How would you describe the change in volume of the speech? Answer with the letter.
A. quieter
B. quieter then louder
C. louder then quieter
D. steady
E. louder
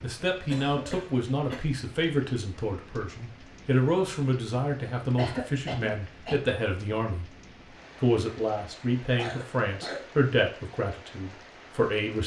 D.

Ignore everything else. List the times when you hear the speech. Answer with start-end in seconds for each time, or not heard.
0.0-7.2, 8.0-12.2.